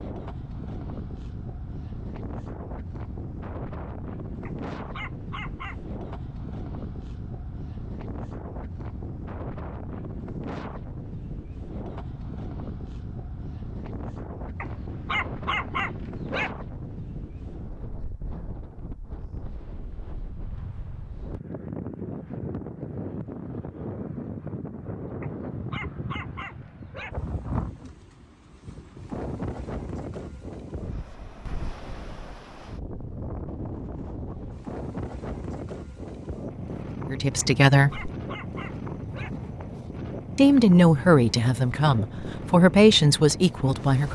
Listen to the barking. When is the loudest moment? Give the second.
16 s.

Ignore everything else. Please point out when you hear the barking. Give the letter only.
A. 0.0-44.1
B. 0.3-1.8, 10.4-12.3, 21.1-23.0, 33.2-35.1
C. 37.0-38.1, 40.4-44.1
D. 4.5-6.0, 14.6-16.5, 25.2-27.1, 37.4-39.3
D.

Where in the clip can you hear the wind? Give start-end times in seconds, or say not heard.
0.0-44.1.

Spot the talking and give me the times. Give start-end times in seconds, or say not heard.
37.0-38.1, 40.4-44.1.